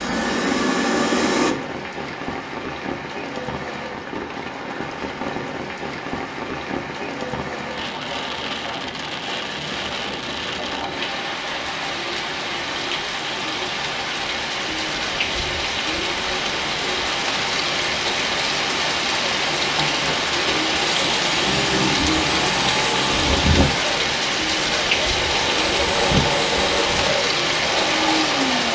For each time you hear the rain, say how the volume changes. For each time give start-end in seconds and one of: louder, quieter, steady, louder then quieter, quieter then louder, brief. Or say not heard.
0.1-28.6 louder.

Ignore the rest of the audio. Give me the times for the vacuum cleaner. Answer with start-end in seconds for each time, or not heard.
0.0-1.6, 19.8-28.6.